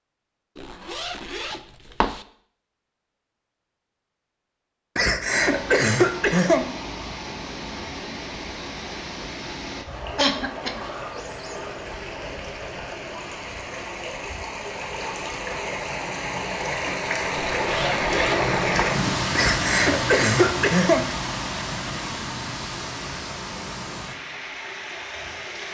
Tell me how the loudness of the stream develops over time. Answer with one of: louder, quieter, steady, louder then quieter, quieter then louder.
louder then quieter.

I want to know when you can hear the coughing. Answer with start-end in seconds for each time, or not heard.
5.0-6.7, 10.2-10.8, 19.4-21.1.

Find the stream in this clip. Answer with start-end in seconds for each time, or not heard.
5.2-25.7.